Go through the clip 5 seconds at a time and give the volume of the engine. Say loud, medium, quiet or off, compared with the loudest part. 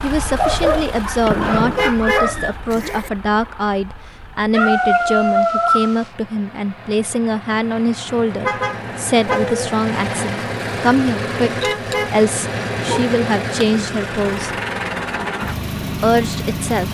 medium, medium, loud, loud.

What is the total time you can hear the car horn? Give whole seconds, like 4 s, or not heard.
3 s.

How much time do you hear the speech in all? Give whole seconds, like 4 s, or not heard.
15 s.